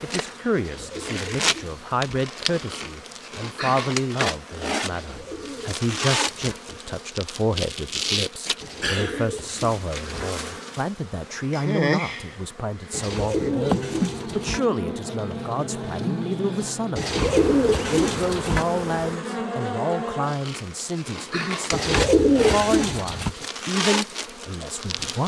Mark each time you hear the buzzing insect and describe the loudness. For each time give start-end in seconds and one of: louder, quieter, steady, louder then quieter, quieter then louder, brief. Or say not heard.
0.0-25.2 steady.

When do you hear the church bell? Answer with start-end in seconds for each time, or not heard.
not heard.